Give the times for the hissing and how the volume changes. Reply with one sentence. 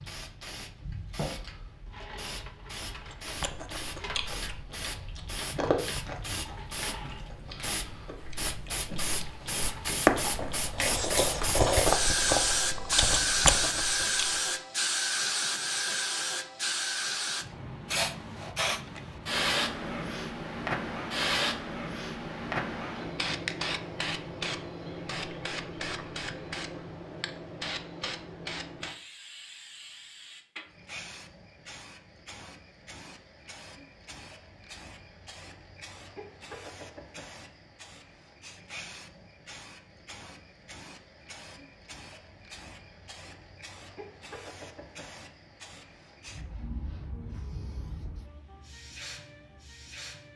You can hear the hissing from 0.0 to 50.3 s, getting louder then quieter.